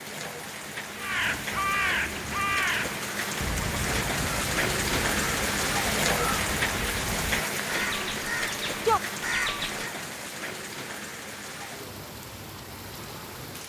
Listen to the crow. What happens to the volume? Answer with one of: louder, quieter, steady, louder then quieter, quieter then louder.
quieter then louder.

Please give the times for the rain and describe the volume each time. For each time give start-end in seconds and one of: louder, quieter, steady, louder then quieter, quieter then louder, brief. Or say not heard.
0.0-13.6 louder then quieter.